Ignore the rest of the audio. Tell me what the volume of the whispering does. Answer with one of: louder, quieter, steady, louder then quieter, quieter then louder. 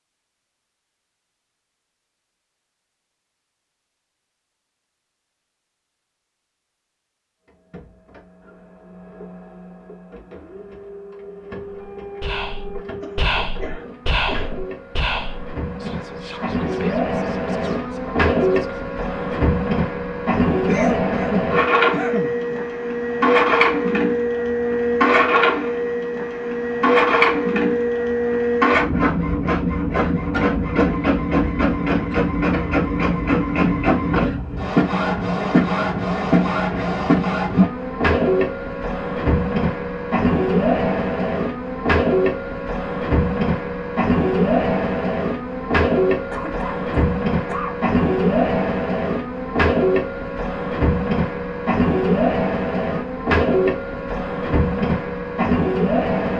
quieter.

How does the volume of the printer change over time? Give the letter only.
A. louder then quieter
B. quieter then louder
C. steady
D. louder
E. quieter
D.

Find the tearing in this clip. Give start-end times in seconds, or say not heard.
not heard.